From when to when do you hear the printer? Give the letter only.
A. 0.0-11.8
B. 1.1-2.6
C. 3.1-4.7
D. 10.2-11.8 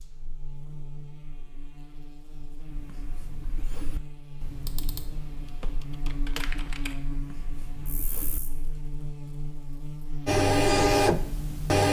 D.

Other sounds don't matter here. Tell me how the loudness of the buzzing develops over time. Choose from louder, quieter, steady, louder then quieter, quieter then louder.
louder.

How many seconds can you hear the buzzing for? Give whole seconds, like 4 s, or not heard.
12 s.